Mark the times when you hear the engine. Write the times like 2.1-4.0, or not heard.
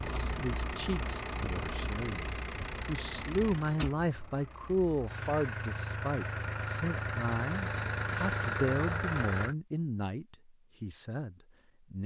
0.0-9.6.